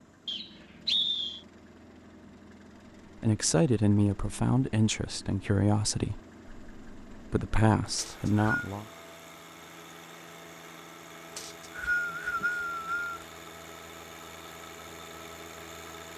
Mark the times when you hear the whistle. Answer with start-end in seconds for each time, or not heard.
0.2-1.4, 8.0-8.7, 11.3-13.2.